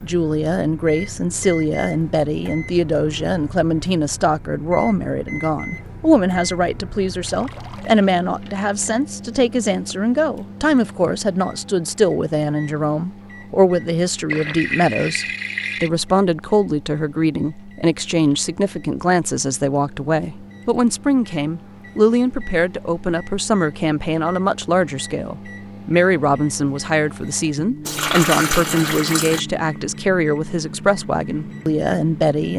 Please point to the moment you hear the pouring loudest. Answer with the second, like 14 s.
28 s.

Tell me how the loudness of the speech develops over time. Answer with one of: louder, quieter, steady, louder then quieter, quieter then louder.
steady.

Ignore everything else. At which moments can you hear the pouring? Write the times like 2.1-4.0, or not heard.
7.2-8.1, 14.3-15.9, 27.9-29.4.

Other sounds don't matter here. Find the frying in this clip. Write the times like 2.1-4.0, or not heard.
not heard.